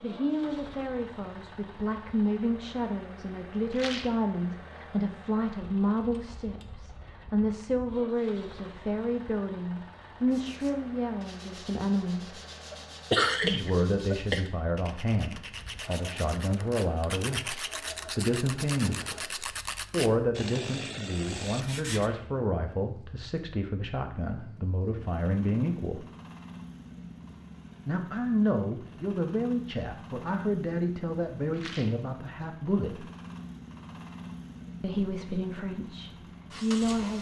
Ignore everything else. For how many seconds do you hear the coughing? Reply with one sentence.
You can hear the coughing for 2 seconds altogether.